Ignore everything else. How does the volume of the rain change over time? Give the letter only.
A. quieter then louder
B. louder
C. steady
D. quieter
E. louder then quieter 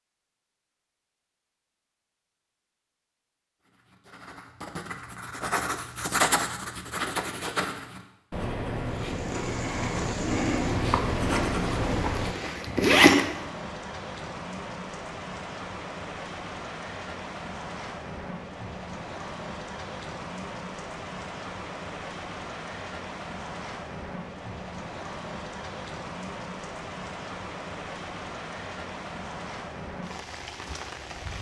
C.